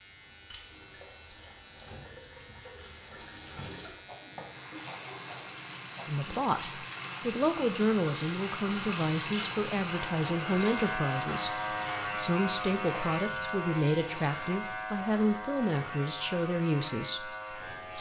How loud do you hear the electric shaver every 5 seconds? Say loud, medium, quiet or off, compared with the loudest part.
quiet, medium, loud, medium.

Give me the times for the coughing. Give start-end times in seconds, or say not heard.
3.8-6.2.